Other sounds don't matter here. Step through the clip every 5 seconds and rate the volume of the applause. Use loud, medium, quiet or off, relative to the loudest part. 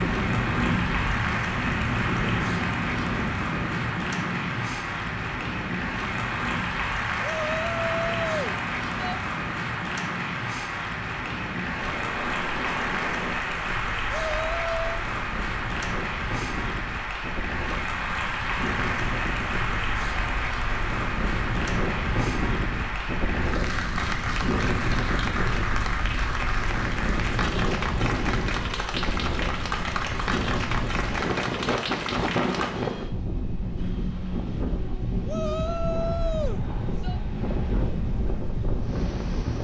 loud, loud, loud, loud, loud, loud, loud, off.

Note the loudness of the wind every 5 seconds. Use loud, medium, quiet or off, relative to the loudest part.
loud, medium, medium, medium, loud, loud, loud, loud.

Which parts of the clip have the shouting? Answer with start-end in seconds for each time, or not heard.
7.2-9.2, 14.2-14.9, 35.2-37.2.